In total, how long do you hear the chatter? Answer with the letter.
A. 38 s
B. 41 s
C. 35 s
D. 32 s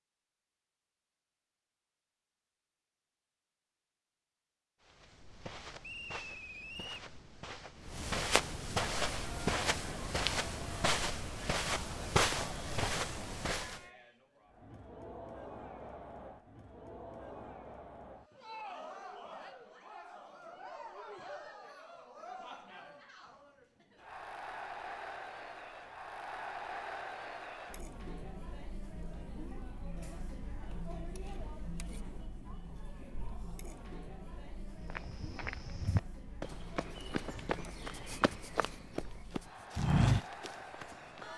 D.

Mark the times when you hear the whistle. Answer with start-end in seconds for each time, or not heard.
5.8-7.0.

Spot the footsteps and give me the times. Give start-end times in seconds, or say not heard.
4.8-13.8, 34.9-41.2.